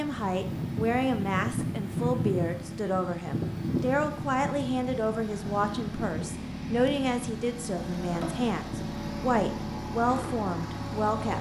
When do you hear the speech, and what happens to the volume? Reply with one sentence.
The speech can be heard from 0.0 to 11.3 s, at a steady volume.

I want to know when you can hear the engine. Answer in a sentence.
The engine can be heard from 0.0 to 11.3 s.